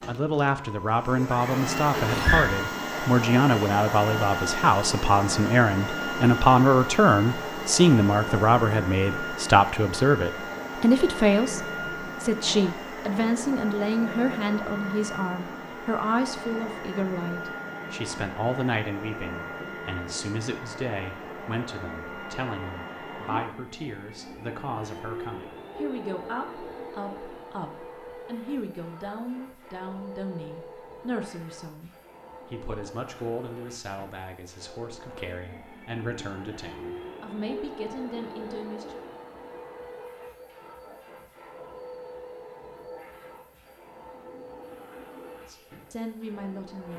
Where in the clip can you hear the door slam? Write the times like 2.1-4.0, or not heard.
1.9-2.5.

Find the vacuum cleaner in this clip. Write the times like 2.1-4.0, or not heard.
0.0-46.9.